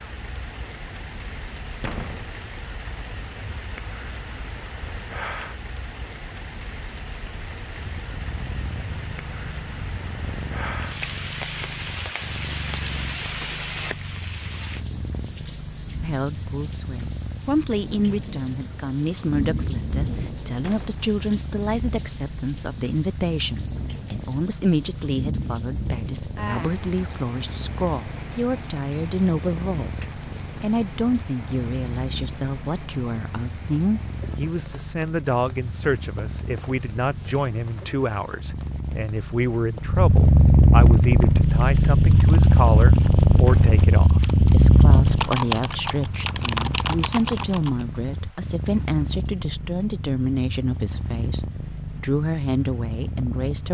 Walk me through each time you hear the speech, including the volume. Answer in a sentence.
The speech can be heard from 16.0 to 53.6 s, at a steady volume.